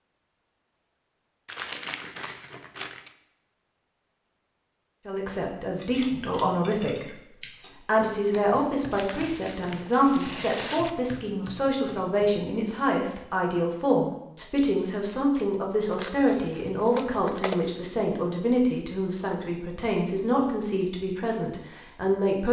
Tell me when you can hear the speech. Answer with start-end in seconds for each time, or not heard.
5.0-22.4.